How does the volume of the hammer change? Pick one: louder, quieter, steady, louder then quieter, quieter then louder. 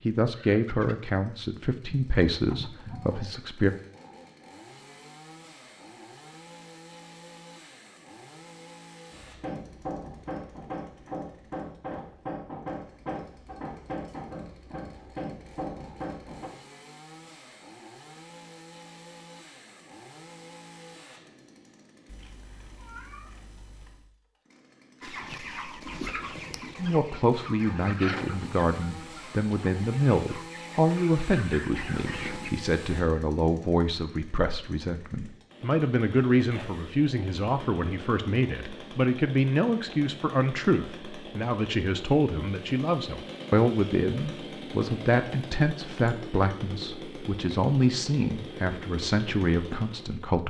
steady.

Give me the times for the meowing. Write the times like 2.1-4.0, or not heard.
22.1-24.1.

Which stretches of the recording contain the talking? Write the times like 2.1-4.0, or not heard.
0.1-3.7, 26.8-50.4.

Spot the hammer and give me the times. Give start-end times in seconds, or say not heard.
9.1-16.5.